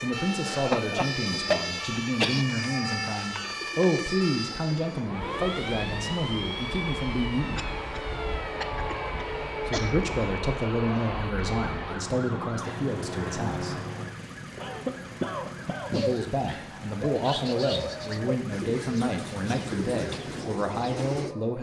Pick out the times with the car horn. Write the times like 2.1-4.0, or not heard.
not heard.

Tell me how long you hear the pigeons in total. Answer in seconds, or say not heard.
11 s.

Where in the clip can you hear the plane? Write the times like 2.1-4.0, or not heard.
5.0-18.5.